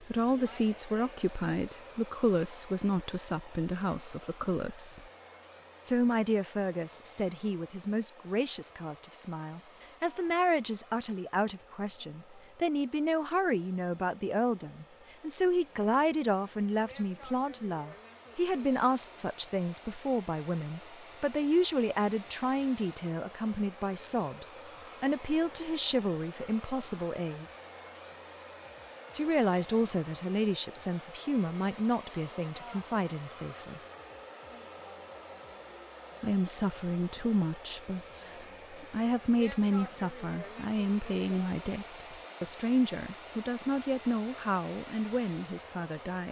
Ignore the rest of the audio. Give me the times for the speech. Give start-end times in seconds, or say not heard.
0.0-5.0, 5.8-27.4, 29.1-33.8, 36.2-46.2.